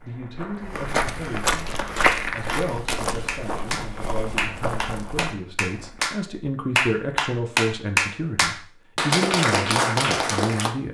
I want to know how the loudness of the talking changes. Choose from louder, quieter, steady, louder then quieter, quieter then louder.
louder.